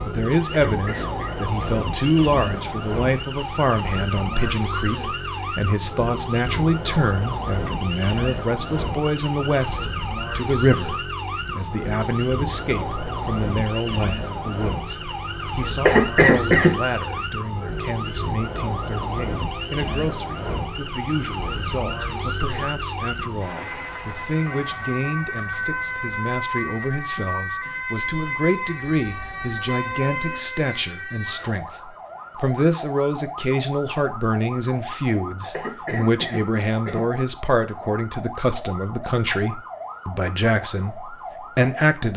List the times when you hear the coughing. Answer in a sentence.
You can hear the coughing from 0.7 to 1.4 s, from 15.8 to 16.8 s and from 35.5 to 37.1 s.